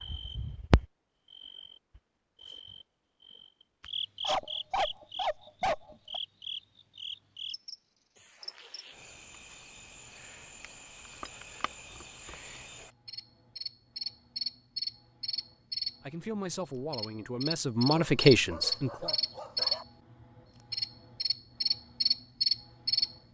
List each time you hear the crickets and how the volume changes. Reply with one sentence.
You can hear the crickets from 0.0 to 23.2 s, getting quieter then louder.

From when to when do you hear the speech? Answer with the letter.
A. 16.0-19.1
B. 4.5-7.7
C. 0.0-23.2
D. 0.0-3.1
A.